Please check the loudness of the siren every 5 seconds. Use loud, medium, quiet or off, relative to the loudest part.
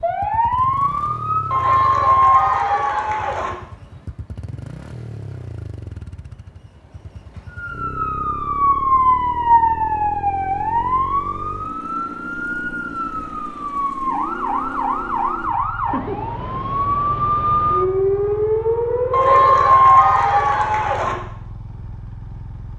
loud, loud, medium, loud, off.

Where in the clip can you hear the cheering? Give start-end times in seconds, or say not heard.
1.5-3.5, 19.1-21.1.